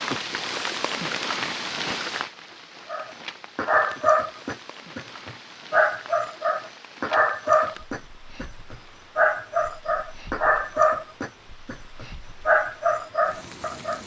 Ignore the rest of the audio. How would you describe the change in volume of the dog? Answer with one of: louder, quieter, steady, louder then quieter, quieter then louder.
steady.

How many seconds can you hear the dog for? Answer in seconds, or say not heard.
11 s.